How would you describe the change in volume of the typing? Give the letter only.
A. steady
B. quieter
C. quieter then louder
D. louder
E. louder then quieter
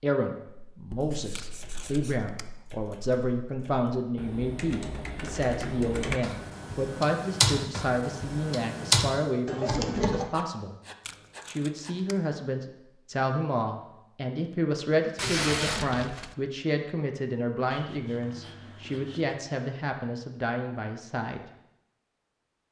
D.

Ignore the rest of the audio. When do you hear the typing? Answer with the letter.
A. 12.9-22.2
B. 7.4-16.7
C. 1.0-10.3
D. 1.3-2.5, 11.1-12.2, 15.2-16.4
C.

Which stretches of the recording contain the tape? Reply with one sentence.
You can hear the tape from 1.3 to 2.5 s, from 11.1 to 12.2 s and from 15.2 to 16.4 s.